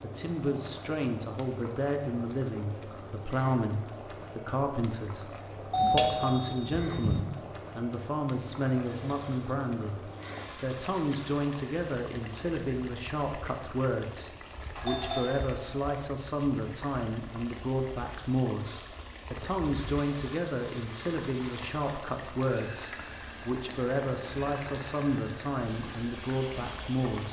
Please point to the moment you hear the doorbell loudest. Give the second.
6 s.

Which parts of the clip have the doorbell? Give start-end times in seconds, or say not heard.
5.7-7.2, 14.8-15.8.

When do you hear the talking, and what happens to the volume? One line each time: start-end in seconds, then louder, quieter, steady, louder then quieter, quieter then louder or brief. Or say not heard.
0.0-27.2 steady.